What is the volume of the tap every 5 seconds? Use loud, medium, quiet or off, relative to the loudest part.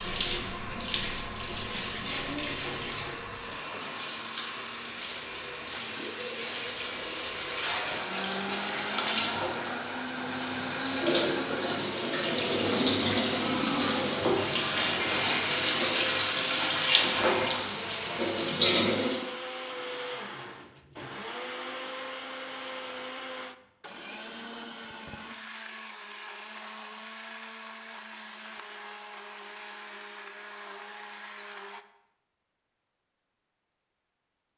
medium, medium, loud, loud, off, off, off.